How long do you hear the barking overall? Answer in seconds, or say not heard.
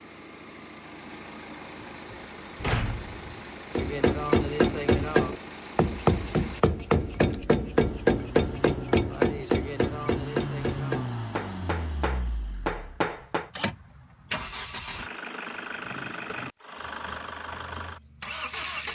not heard.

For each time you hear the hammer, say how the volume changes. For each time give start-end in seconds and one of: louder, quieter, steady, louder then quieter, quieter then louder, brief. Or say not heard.
3.8-13.5 quieter.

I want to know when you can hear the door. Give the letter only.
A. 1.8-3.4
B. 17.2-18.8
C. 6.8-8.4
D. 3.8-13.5
A.